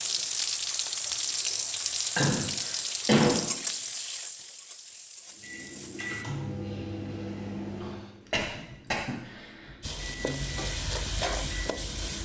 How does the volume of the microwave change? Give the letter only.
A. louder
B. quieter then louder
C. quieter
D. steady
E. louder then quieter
B.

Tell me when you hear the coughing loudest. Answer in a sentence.
The volume of the coughing peaks at 3 seconds.